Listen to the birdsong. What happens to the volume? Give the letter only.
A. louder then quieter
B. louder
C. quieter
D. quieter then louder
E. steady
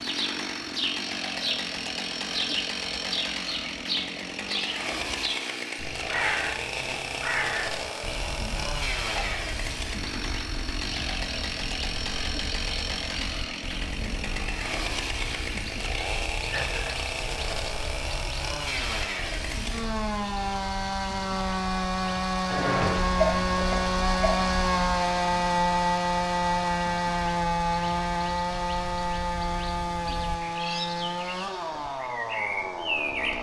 D.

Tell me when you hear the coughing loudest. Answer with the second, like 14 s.
23 s.